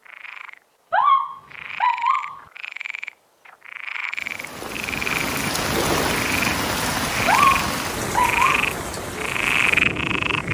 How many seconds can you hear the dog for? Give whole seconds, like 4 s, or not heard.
3 s.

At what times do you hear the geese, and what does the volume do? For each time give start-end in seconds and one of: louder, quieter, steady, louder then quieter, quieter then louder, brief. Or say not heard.
not heard.